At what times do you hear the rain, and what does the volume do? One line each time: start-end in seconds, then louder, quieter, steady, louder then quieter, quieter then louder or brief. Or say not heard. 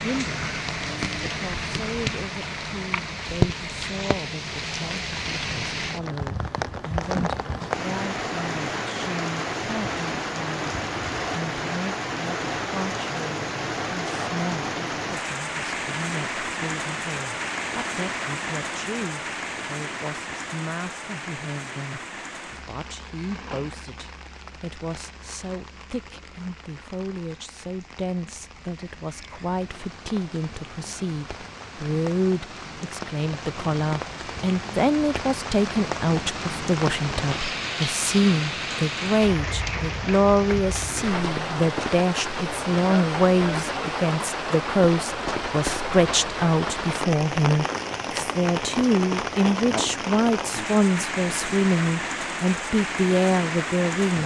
0.0-54.2 quieter then louder.